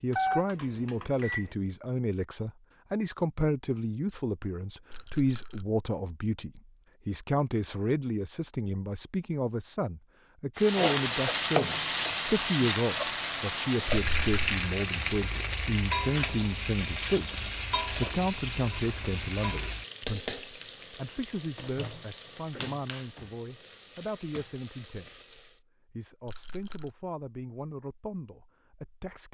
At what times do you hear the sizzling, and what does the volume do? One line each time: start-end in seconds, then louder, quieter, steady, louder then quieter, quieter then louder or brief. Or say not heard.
10.6-25.6 quieter.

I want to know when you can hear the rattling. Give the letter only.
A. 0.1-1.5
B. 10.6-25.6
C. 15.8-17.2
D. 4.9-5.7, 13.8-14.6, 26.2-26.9
D.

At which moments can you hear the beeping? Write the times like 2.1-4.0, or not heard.
0.1-1.5.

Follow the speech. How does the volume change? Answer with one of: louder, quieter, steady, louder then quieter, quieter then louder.
quieter.